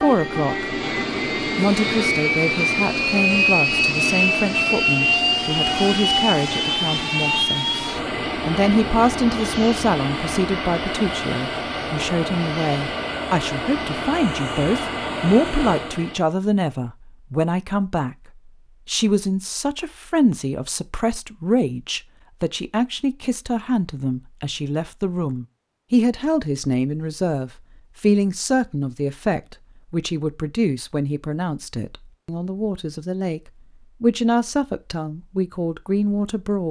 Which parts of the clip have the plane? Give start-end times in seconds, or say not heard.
0.0-16.2.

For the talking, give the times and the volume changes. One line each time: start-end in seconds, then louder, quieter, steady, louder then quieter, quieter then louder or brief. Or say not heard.
0.0-0.8 brief
1.6-36.6 steady.